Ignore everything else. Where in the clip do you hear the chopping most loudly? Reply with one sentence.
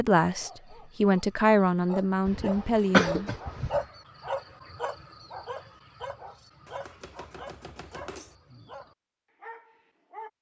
The volume of the chopping peaks at 8 seconds.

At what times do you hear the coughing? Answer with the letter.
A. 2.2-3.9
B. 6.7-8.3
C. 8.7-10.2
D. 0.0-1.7
A.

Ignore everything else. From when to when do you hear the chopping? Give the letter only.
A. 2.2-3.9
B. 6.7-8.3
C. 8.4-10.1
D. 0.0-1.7
B.